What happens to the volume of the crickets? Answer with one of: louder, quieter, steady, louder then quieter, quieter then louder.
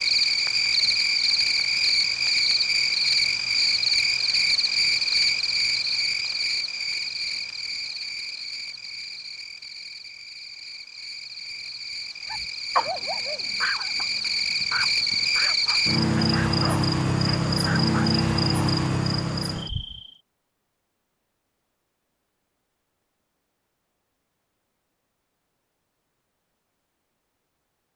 quieter then louder.